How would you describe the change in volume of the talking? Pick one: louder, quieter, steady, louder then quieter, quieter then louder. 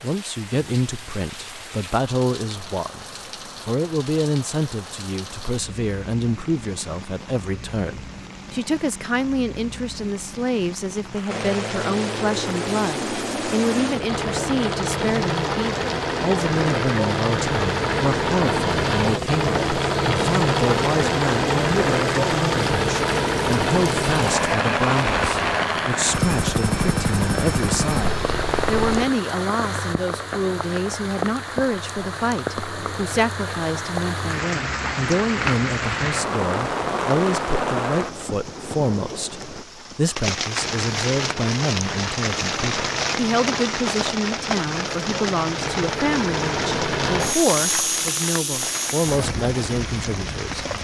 steady.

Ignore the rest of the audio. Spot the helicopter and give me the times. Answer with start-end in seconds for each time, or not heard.
11.2-29.1, 40.5-50.8.